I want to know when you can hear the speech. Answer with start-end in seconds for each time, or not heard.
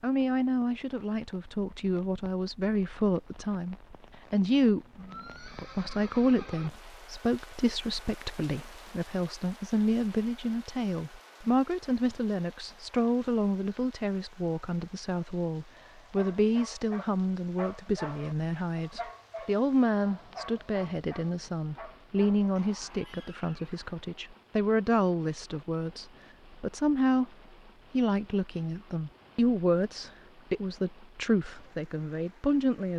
0.0-27.3, 27.9-32.9.